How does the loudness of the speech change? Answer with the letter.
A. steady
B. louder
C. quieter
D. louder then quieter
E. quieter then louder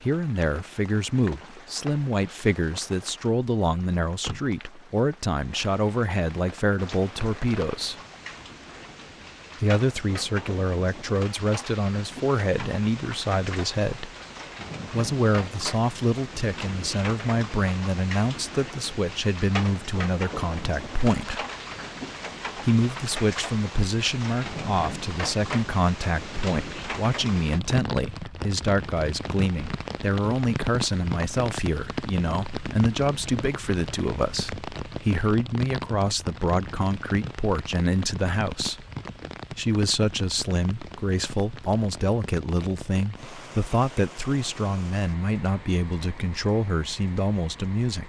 A.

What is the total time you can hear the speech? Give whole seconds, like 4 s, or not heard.
44 s.